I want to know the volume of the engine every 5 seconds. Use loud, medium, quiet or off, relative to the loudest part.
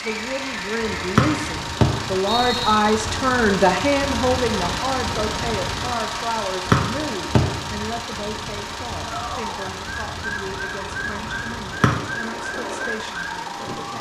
loud, loud, medium.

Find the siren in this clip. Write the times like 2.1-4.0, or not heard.
0.0-1.6, 9.0-13.9.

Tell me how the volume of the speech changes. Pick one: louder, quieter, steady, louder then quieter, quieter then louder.
quieter.